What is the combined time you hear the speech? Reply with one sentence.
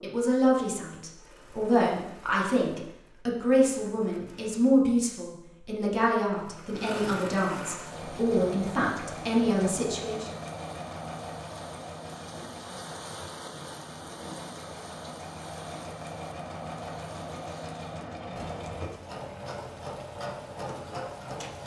The speech can be heard for 10 seconds in total.